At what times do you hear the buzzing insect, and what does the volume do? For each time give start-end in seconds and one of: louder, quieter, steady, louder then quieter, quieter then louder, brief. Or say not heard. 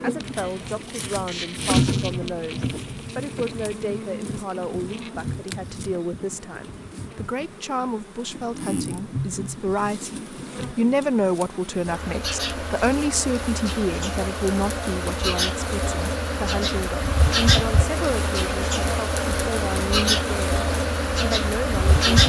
0.0-22.2 quieter then louder.